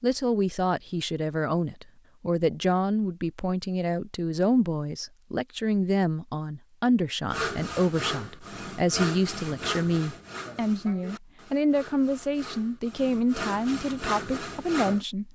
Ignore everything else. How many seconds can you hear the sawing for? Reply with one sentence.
The sawing can be heard for 8 seconds in total.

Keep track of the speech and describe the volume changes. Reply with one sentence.
The loudness of the speech stays about the same.